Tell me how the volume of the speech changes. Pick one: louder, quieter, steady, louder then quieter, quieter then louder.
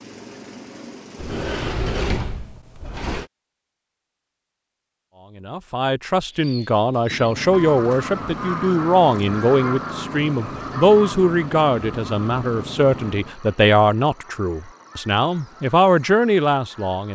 steady.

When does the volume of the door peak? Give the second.
2 s.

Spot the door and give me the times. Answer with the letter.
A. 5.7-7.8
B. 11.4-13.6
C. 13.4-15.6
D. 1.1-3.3
D.